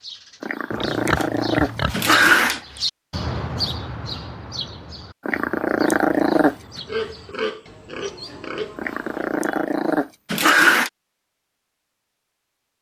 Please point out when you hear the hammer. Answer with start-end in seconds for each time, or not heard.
not heard.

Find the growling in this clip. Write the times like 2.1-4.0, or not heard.
0.4-2.6, 5.2-6.5, 8.8-10.9.